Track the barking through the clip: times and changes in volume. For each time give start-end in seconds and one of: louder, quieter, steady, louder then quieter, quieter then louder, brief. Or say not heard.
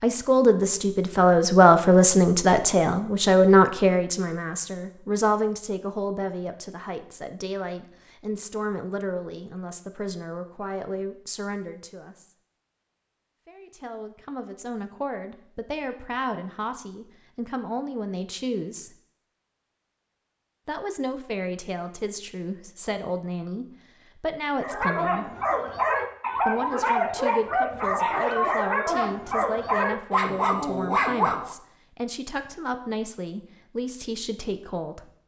24.6-31.6 steady.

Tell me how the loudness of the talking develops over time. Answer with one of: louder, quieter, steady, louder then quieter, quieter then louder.
quieter.